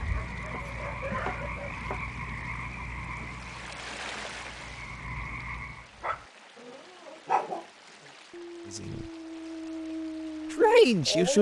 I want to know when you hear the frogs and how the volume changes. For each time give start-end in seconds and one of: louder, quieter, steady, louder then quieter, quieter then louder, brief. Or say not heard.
0.0-5.9 quieter then louder.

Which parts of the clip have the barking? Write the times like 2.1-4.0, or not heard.
0.0-1.9, 6.0-11.3.